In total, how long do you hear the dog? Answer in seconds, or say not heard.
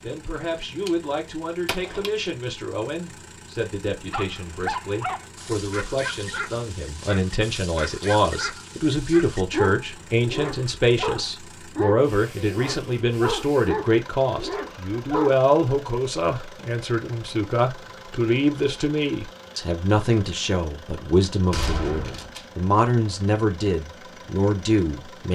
11 s.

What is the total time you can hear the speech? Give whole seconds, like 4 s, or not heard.
25 s.